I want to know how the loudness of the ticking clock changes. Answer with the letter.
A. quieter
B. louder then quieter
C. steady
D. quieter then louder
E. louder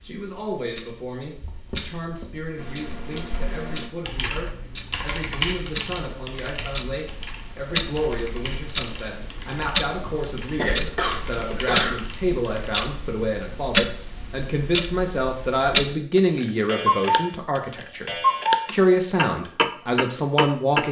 E.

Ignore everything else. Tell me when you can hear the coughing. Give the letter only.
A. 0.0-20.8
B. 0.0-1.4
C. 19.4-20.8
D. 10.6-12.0
D.